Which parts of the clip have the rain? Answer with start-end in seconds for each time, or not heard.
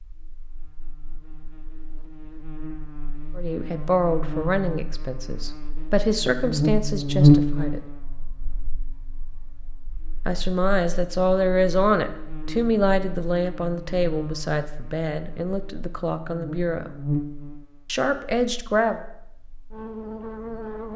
not heard.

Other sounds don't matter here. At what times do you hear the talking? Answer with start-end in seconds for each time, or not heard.
3.4-7.8, 10.2-16.9, 17.9-19.0.